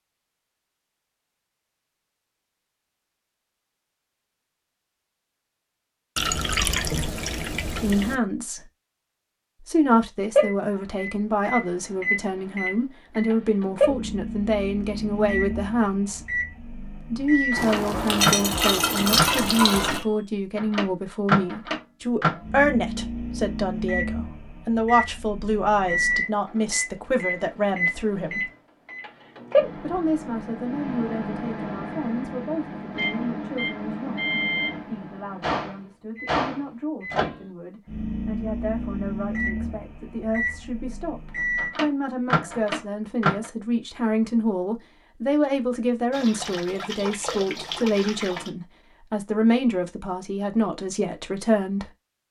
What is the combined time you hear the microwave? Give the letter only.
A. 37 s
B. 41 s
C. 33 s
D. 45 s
C.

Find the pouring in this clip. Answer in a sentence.
The pouring can be heard from 6.2 to 8.2 s, from 17.6 to 20.1 s and from 46.1 to 48.5 s.